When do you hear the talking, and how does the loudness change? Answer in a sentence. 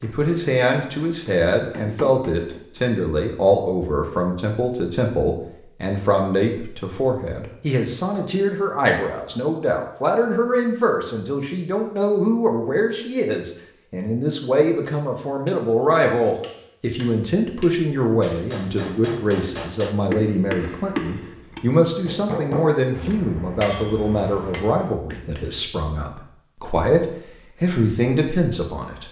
The talking can be heard from 0.0 to 29.0 s, at a steady volume.